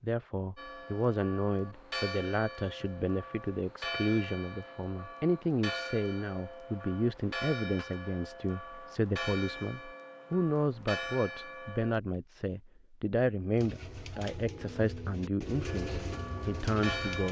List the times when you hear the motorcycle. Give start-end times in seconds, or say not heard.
not heard.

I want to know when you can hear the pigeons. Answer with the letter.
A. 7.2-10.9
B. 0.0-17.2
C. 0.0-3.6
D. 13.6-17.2
D.